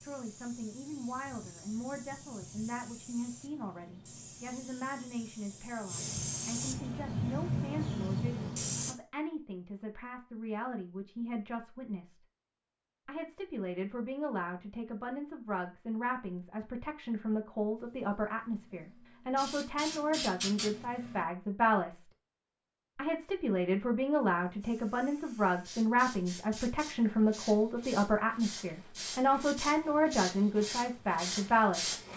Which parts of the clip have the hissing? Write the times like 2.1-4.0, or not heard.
0.0-8.9, 17.8-21.2, 24.4-32.1.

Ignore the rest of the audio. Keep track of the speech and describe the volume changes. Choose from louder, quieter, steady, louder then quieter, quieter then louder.
louder.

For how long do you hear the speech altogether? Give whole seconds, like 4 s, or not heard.
30 s.